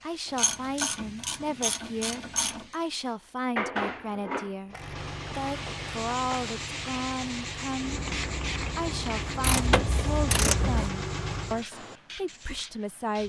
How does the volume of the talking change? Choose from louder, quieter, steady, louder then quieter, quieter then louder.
steady.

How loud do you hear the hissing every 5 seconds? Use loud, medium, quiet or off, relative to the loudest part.
loud, loud, medium.